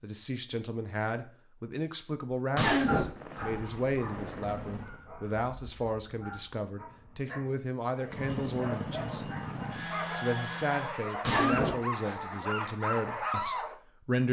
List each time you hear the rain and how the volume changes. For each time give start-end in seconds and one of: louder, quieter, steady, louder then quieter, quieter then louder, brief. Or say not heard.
not heard.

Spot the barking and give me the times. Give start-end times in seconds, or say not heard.
2.9-13.8.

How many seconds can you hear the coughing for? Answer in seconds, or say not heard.
2 s.